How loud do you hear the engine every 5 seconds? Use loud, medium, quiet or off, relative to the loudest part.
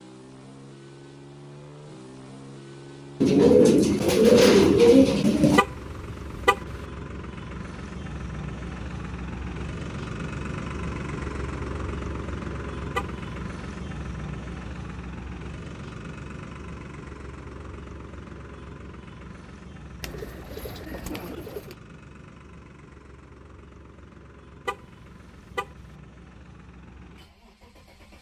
medium, loud, loud, medium, quiet, quiet.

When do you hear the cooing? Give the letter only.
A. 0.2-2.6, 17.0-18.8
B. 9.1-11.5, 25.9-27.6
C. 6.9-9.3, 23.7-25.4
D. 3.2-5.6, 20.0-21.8
D.